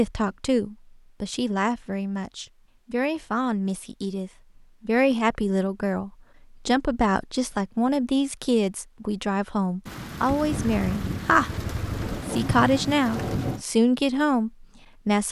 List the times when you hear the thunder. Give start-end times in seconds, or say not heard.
9.8-13.7.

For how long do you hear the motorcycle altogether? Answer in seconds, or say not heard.
2 s.